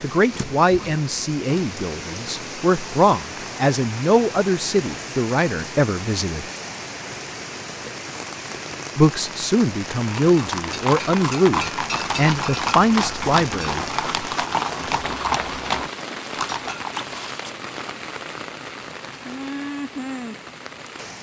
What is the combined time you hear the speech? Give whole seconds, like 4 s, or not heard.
11 s.